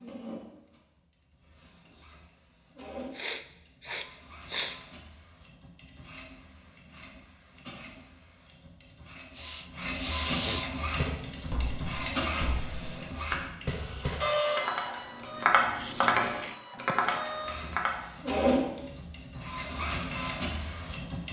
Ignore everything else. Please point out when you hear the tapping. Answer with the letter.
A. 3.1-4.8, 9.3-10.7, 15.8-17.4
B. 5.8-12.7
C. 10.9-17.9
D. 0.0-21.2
C.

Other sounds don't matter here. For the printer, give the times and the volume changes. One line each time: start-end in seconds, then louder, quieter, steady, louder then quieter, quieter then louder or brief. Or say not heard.
0.0-21.2 louder.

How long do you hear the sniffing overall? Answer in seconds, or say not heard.
5 s.